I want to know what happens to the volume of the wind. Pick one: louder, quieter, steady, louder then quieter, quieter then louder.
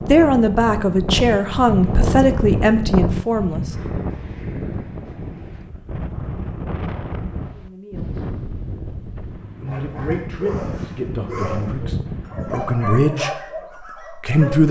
quieter.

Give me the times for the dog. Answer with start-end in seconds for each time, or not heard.
9.7-14.6.